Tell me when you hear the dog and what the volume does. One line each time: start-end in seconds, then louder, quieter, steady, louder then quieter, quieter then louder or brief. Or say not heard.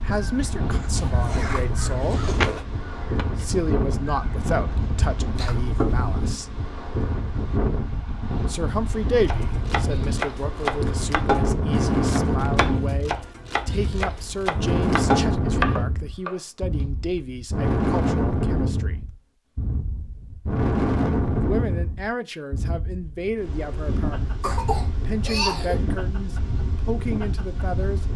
not heard.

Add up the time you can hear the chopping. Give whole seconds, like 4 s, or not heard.
8 s.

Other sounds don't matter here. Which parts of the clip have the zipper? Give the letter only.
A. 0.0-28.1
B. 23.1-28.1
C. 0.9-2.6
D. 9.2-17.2
C.